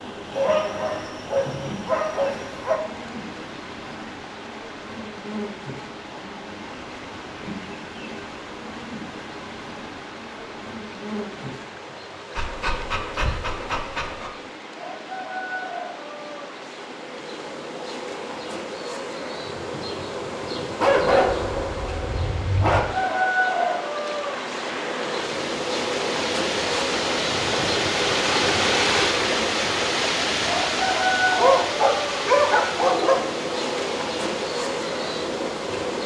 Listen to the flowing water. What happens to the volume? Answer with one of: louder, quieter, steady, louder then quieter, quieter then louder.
louder.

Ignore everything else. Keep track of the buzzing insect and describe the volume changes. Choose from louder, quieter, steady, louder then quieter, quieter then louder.
louder.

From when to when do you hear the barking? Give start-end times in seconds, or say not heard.
0.3-2.8, 12.3-14.3, 20.8-22.8, 31.2-33.2.